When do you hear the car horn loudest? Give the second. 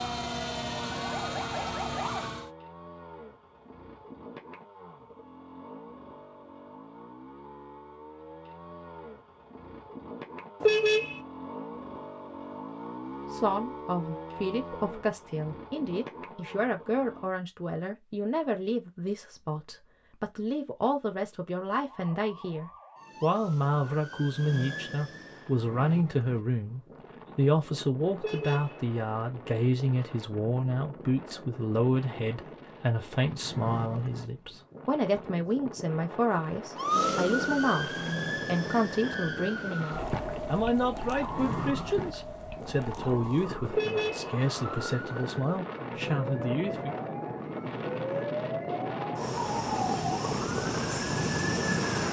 11 s.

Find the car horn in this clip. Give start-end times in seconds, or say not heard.
10.6-11.2, 28.1-28.8, 43.7-44.3.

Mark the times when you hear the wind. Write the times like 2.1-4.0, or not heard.
25.1-52.0.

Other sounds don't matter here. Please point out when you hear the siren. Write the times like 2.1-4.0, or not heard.
0.0-2.5, 21.8-25.6, 36.8-52.0.